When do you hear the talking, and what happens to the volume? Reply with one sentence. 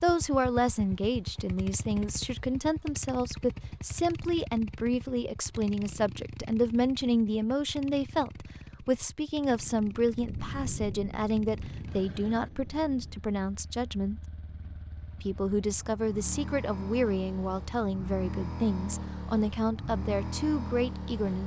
The talking can be heard from 0.0 to 14.2 s, at a steady volume; and from 15.2 to 21.4 s, at a steady volume.